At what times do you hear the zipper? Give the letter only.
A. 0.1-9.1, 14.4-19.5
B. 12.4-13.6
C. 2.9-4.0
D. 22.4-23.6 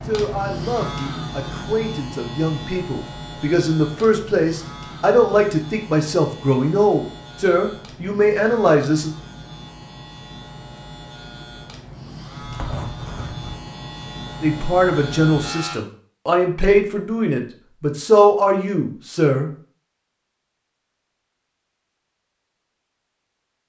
B.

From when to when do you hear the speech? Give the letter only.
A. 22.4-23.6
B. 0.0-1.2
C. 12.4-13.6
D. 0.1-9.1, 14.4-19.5
D.